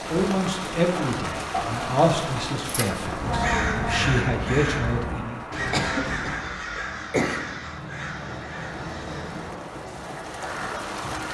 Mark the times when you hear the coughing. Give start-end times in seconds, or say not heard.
0.9-1.7, 5.7-7.5.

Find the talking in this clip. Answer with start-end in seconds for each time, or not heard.
0.1-5.4.